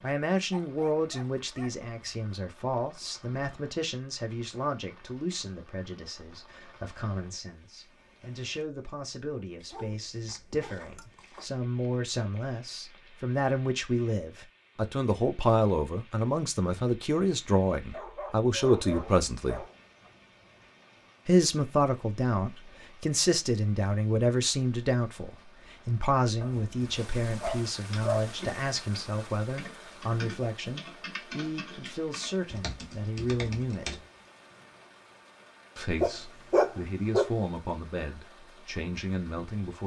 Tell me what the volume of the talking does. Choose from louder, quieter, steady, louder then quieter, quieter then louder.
louder then quieter.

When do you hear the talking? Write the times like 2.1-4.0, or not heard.
0.0-19.6, 21.2-34.0, 35.8-39.8.